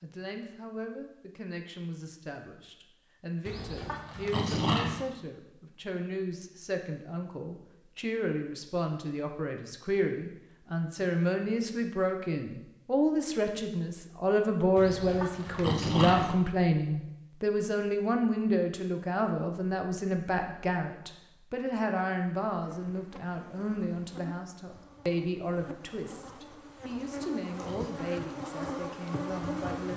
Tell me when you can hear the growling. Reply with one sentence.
The growling can be heard from 3.5 to 5.0 s, from 14.8 to 16.4 s and from 26.8 to 28.0 s.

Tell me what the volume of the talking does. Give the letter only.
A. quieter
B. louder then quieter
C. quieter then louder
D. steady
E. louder
B.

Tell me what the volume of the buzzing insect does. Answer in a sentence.
The loudness of the buzzing insect goes up.